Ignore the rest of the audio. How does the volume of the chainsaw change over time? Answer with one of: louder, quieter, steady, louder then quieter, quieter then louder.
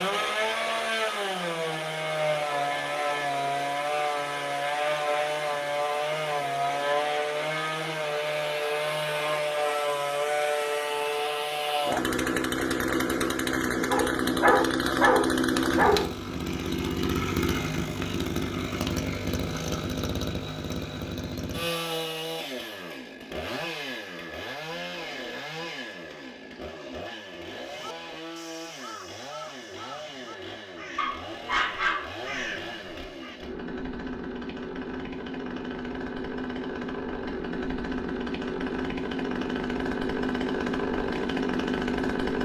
quieter then louder.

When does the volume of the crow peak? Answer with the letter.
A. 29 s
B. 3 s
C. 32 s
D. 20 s
C.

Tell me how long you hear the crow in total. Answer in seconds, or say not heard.
6 s.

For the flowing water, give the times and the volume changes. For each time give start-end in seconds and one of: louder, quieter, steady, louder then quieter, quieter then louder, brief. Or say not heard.
not heard.